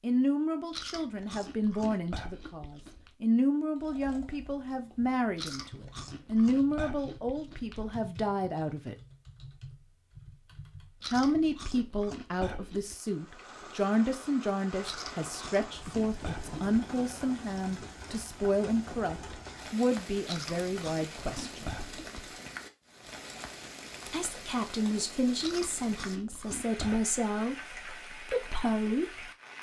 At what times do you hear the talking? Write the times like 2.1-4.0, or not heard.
0.0-8.9, 11.1-21.8, 24.1-29.3.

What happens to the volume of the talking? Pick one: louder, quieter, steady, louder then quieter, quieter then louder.
steady.